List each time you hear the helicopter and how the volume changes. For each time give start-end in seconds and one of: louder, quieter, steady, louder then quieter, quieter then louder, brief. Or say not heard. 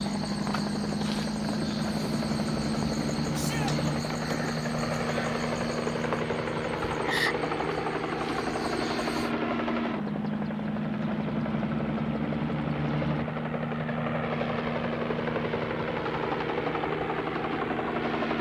0.0-18.3 steady.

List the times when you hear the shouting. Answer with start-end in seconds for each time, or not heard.
3.3-3.8.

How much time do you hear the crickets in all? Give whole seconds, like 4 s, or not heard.
9 s.